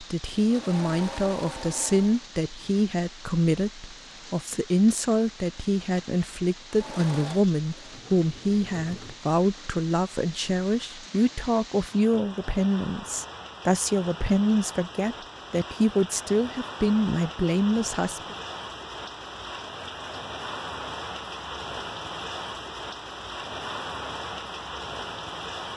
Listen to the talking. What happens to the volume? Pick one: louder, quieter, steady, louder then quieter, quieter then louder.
steady.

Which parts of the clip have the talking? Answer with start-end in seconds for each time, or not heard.
0.0-18.4.